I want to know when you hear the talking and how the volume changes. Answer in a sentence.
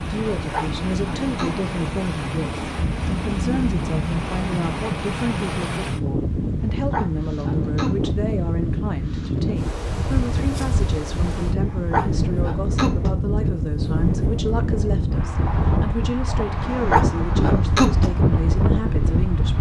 The talking can be heard from 0.1 to 19.5 s, at a steady volume.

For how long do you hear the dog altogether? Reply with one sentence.
The dog can be heard for 6 seconds in total.